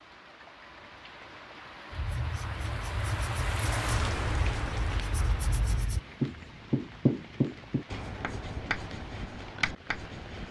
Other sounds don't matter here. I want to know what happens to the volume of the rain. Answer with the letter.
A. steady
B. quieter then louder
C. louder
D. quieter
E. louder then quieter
E.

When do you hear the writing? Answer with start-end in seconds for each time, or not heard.
1.9-10.4.